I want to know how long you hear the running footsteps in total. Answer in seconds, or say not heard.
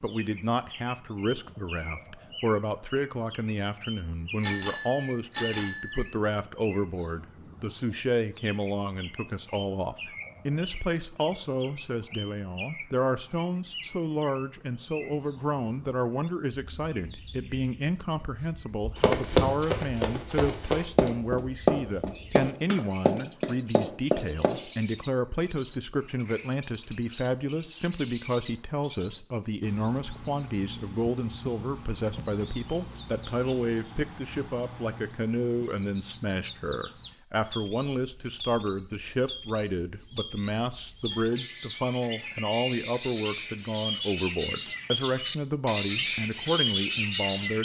6 s.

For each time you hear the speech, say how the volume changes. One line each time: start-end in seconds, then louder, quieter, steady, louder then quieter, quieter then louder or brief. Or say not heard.
0.0-47.5 steady.